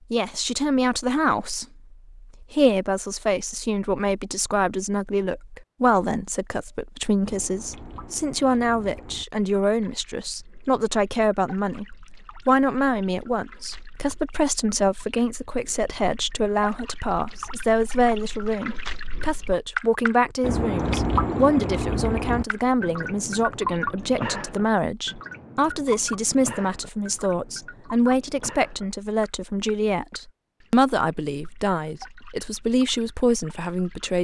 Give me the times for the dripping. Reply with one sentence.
You can hear the dripping from 6.7 to 34.2 s.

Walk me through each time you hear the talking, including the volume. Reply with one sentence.
The talking can be heard from 0.1 to 34.2 s, at a steady volume.